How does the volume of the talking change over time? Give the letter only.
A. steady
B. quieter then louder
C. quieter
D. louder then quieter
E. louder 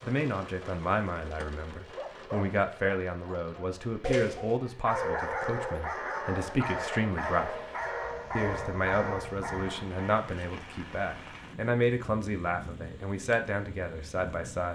A.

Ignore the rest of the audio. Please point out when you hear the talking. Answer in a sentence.
The talking can be heard from 0.0 to 7.5 s and from 8.3 to 14.7 s.